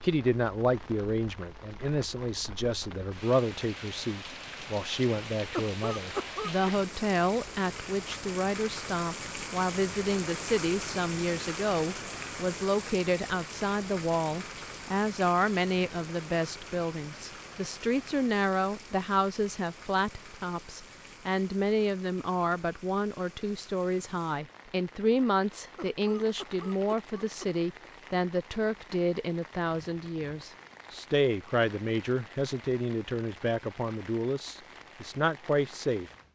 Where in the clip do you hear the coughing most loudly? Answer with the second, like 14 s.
6 s.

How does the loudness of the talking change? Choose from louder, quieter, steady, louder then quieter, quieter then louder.
steady.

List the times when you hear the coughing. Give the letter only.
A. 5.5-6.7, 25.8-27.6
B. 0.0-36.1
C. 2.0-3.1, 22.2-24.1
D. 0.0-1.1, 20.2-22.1
A.